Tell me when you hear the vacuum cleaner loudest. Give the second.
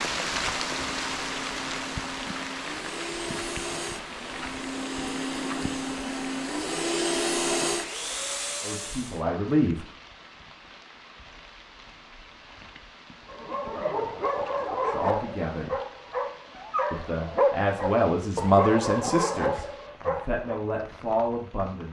7 s.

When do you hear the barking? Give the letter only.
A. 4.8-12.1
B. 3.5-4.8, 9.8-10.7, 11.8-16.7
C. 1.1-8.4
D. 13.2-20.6
D.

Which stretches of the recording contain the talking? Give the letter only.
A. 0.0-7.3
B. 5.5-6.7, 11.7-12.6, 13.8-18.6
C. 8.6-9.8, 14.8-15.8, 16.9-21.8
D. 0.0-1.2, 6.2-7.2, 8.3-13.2
C.